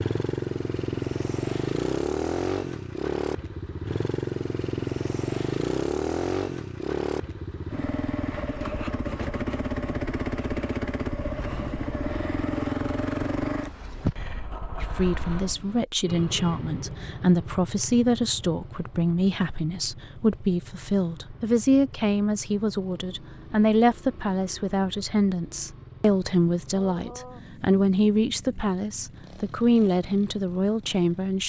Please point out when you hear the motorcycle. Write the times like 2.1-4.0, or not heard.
0.0-31.4.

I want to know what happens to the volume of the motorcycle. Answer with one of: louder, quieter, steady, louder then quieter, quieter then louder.
quieter.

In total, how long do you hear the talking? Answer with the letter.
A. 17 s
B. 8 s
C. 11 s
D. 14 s
A.